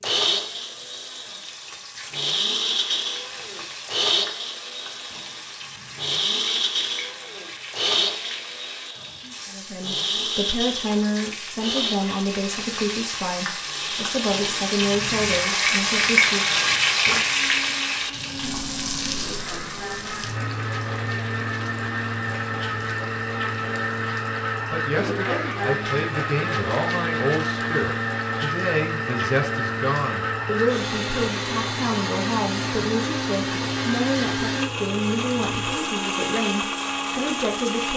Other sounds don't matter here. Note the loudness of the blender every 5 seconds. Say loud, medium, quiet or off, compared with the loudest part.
loud, loud, loud, medium, loud, loud, loud, loud.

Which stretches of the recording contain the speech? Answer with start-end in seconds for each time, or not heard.
9.4-16.6, 24.7-37.9.